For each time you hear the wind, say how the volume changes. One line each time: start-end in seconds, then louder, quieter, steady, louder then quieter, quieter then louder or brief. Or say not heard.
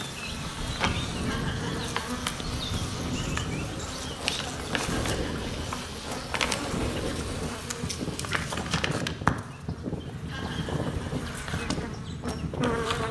0.0-13.0 steady.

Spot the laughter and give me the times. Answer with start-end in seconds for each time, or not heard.
1.2-1.9, 4.8-5.7, 10.2-11.1.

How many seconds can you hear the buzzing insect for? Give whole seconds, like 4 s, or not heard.
13 s.